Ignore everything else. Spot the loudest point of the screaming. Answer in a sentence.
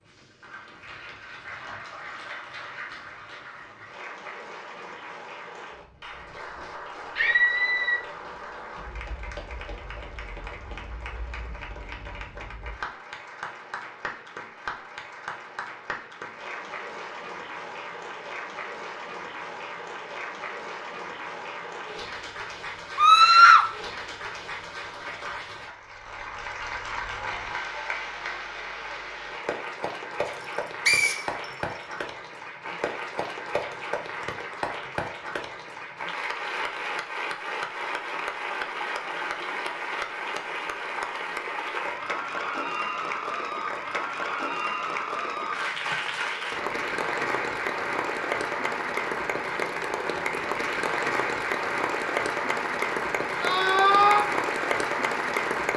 The volume of the screaming peaks at 23 seconds.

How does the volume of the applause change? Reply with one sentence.
The volume of the applause goes up.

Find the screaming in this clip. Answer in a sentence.
The screaming can be heard from 7.2 to 8.0 s, from 22.9 to 23.6 s and from 53.4 to 54.2 s.